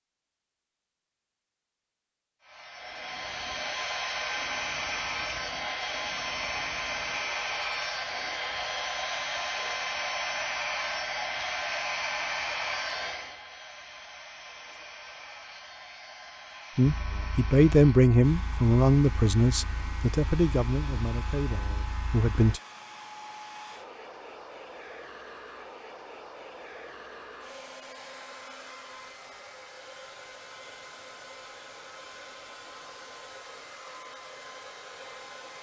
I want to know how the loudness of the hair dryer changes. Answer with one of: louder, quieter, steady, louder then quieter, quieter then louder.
quieter.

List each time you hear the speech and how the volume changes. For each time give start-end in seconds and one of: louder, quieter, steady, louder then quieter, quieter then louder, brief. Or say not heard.
16.8-22.6 quieter.